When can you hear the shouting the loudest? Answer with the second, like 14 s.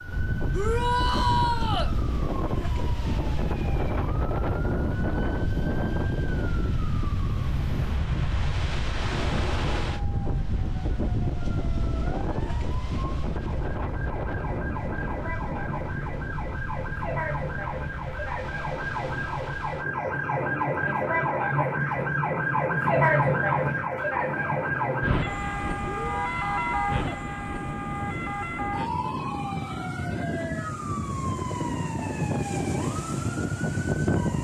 1 s.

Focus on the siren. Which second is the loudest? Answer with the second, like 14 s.
23 s.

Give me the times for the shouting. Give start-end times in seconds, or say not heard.
0.5-1.9, 25.9-27.0.